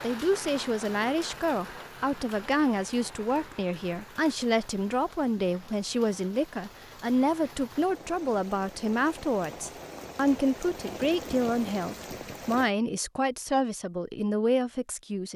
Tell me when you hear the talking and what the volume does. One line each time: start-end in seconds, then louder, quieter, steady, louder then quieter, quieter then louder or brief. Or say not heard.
0.0-15.3 steady.